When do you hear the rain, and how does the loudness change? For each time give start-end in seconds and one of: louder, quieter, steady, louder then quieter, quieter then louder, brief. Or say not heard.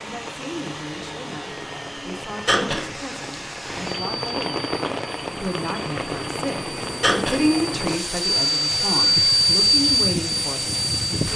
0.0-11.3 louder.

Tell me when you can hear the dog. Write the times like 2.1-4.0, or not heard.
not heard.